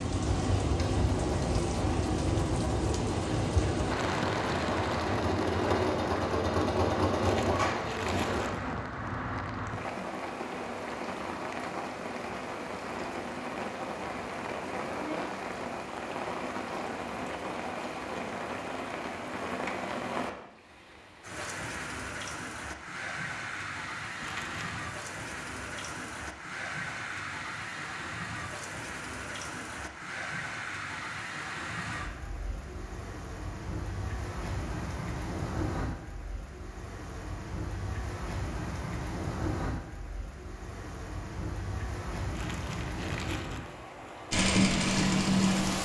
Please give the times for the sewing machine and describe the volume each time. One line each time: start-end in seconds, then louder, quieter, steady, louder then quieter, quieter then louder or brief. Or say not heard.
0.2-8.4 louder
44.3-45.7 brief.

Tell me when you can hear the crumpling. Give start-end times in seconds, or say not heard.
7.2-8.6, 24.2-24.9, 42.3-43.8.